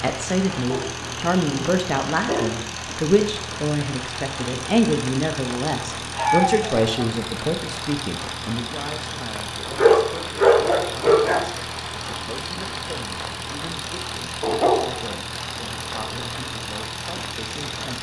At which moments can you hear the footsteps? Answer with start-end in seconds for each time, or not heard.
not heard.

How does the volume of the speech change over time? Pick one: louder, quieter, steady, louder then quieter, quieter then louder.
quieter.